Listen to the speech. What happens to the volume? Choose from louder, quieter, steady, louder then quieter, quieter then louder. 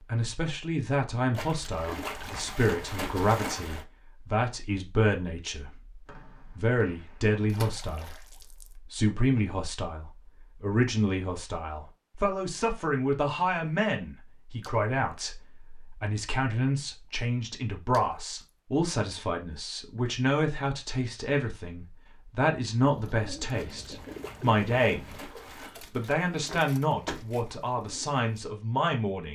steady.